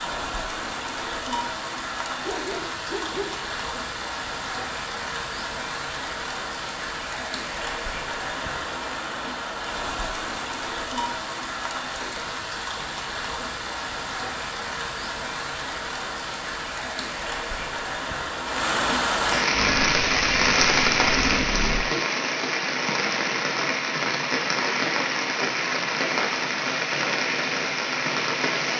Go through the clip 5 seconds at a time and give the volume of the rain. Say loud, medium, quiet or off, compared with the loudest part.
medium, medium, medium, loud, loud, loud.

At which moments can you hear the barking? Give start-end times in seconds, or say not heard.
2.2-3.4.